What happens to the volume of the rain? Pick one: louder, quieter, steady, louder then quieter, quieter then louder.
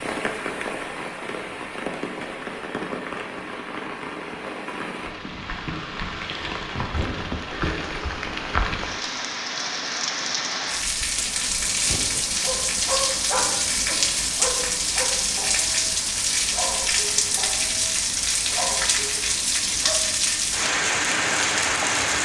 louder.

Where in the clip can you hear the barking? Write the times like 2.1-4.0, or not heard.
12.3-20.1.